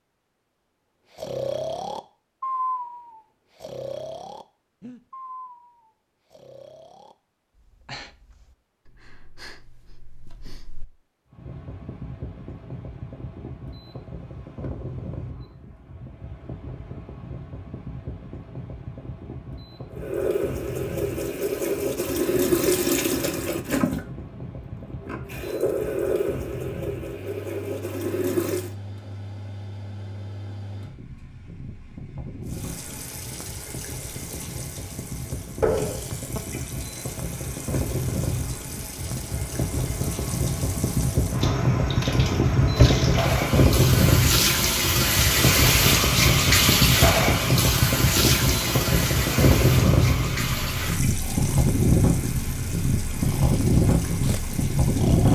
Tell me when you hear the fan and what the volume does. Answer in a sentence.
The fan can be heard from 11.3 to 55.3 s, getting louder.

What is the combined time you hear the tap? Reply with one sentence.
You can hear the tap for 32 seconds altogether.